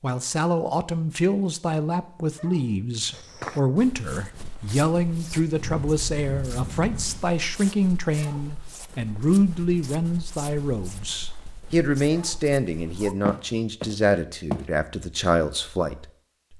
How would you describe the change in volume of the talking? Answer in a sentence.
The loudness of the talking stays about the same.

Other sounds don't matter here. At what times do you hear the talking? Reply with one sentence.
The talking can be heard from 0.0 to 16.5 s.